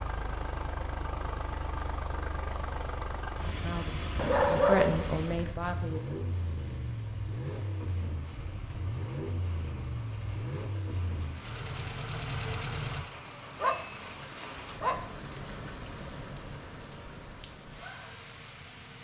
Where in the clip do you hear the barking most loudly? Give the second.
5 s.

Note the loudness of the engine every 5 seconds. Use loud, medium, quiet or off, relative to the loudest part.
loud, loud, loud, quiet.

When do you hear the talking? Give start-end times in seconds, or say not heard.
3.6-6.1.